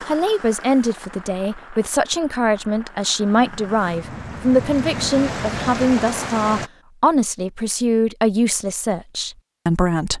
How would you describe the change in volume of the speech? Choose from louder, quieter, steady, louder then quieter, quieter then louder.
steady.